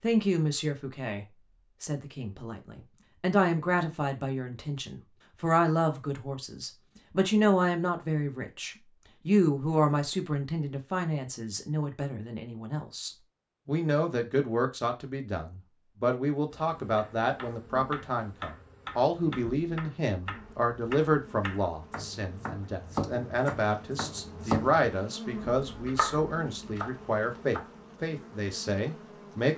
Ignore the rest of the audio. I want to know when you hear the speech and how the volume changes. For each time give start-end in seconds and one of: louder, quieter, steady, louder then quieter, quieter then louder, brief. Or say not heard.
0.0-29.5 steady.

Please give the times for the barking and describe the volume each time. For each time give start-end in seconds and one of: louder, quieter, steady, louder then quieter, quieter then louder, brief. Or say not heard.
not heard.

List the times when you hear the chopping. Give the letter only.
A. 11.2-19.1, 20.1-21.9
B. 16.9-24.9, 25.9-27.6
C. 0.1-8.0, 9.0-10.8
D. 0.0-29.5
B.